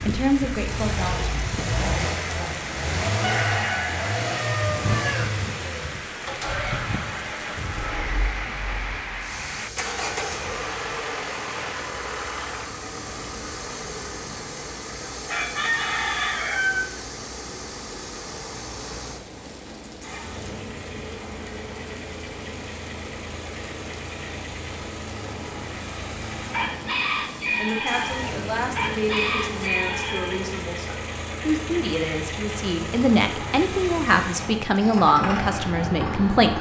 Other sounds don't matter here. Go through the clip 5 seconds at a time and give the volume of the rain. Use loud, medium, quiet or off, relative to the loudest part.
loud, loud, medium, medium, medium, medium, off, off.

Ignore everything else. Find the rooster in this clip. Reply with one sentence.
The rooster can be heard from 3.2 to 5.2 s, from 15.2 to 16.8 s and from 26.5 to 30.5 s.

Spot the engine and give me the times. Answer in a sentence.
The engine can be heard from 0.1 to 36.5 s.